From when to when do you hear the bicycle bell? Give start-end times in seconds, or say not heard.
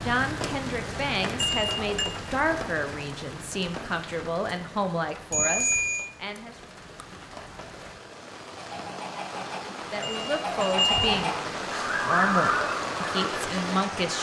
1.4-2.1, 5.3-6.0, 10.0-11.2.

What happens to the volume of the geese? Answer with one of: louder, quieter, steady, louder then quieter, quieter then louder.
louder.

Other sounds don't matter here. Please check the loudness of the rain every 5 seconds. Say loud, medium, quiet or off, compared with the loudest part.
loud, medium, loud.